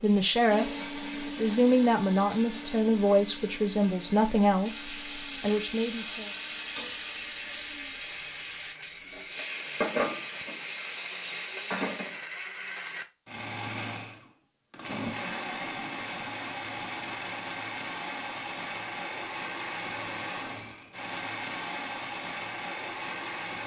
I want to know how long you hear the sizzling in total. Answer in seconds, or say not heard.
12 s.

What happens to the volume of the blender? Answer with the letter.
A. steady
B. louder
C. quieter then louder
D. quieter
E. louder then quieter
C.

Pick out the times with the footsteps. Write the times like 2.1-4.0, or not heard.
not heard.